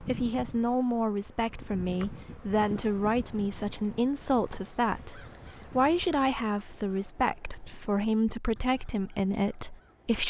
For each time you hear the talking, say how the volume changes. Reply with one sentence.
You can hear the talking from 0.0 to 10.2 s, at a steady volume.